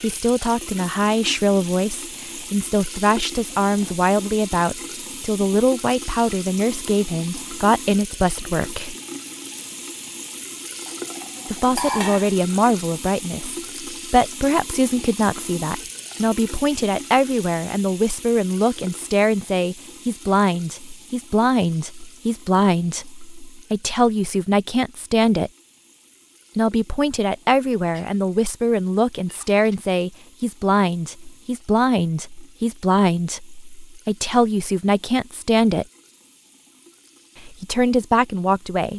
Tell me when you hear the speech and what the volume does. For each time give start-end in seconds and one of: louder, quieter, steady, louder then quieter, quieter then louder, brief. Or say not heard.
0.0-8.9 steady
11.4-25.5 steady
26.6-35.9 steady
37.4-38.9 brief.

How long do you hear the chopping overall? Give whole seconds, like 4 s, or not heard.
not heard.